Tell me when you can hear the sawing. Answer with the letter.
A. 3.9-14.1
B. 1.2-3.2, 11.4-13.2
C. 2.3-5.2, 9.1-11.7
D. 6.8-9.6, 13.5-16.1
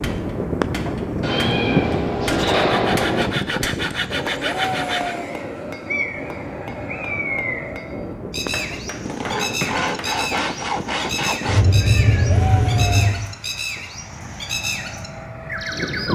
C.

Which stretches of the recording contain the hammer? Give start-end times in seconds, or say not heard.
0.0-10.2.